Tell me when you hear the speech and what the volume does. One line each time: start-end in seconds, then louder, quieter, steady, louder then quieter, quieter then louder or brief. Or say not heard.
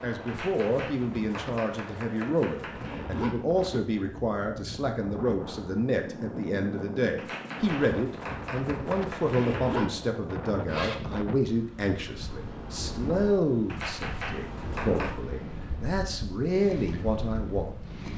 0.0-18.1 steady.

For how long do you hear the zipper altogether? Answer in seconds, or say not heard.
2 s.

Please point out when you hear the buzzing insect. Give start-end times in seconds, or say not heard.
not heard.